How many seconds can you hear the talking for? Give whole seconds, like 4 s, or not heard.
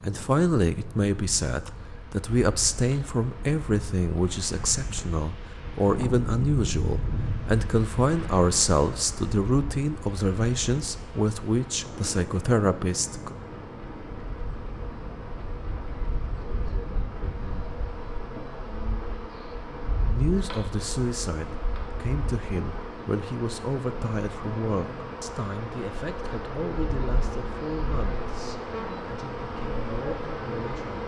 24 s.